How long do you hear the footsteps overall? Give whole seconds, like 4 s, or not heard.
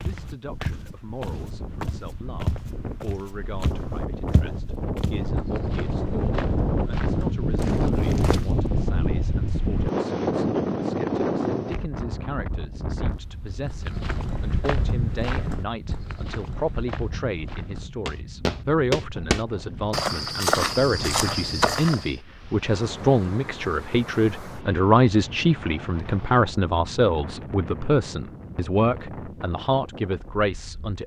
17 s.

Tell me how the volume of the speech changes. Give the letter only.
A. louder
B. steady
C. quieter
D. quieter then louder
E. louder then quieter
A.